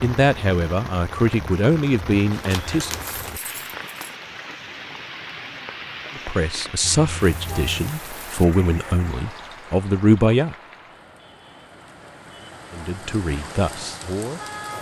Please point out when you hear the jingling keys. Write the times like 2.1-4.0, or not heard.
2.3-4.2.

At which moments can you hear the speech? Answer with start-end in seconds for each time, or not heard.
0.0-3.0, 6.2-10.6, 12.7-14.7.